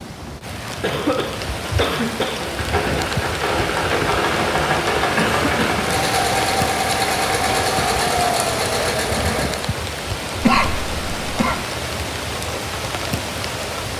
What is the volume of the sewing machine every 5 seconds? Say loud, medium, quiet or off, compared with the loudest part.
loud, loud, off.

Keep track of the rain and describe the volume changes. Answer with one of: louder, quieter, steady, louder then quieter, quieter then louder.
steady.